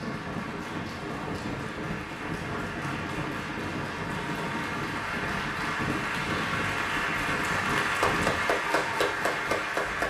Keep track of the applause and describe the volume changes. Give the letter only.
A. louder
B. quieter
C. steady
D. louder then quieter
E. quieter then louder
A.